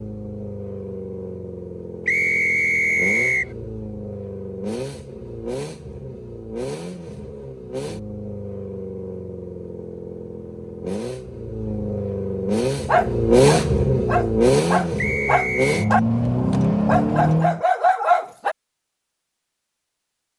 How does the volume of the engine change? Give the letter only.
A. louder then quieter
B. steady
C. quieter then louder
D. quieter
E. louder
E.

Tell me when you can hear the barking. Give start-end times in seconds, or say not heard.
12.8-18.6.